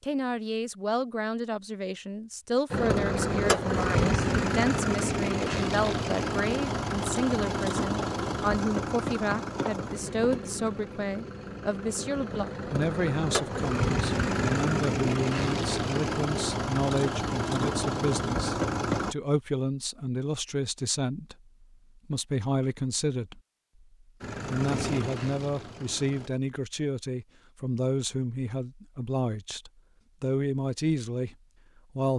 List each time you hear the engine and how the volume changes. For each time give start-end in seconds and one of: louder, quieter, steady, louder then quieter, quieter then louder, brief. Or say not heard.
2.7-19.1 quieter then louder
24.2-26.3 brief.